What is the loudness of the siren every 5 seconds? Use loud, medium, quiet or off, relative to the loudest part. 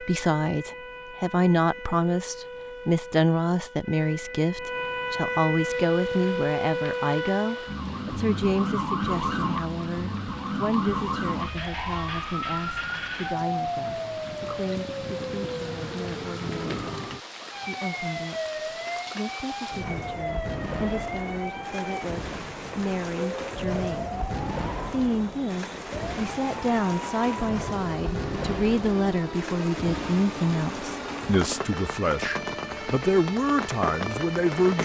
medium, loud, loud, medium, medium, medium, medium.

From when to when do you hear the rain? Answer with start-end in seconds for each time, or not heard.
5.6-34.8.